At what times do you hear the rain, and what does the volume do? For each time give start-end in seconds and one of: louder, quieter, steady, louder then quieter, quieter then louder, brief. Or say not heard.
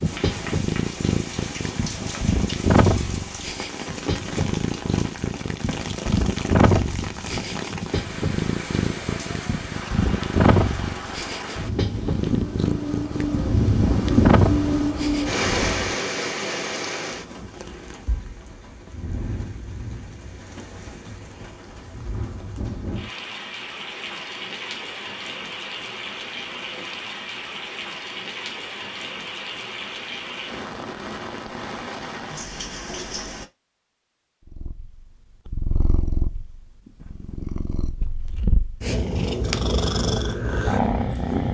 0.0-33.5 louder then quieter.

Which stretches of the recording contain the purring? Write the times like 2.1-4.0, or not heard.
0.0-15.9, 34.5-41.5.